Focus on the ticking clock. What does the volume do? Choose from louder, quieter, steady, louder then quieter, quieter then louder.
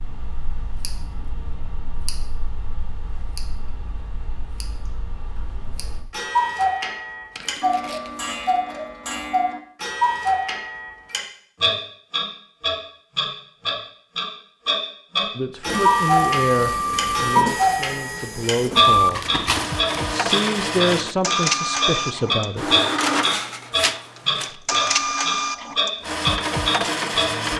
louder.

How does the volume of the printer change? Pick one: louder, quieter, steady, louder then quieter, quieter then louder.
steady.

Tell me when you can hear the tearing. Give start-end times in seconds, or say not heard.
7.3-8.6, 18.9-20.0.